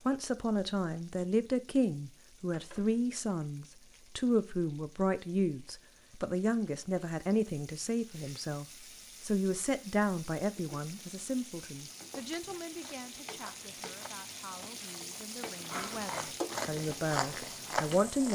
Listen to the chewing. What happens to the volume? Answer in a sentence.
The volume of the chewing goes up.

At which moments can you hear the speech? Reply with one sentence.
You can hear the speech from 0.1 to 18.3 s.